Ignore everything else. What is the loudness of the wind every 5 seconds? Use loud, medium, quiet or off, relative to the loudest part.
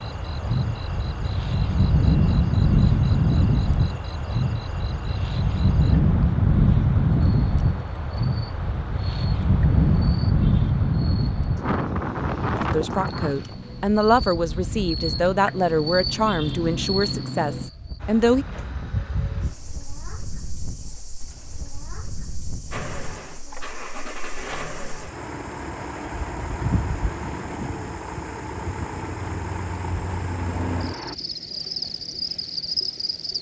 loud, loud, loud, quiet, quiet, off, off.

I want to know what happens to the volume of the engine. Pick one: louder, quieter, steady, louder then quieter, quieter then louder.
steady.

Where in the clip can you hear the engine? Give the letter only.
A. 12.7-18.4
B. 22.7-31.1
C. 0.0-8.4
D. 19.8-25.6
B.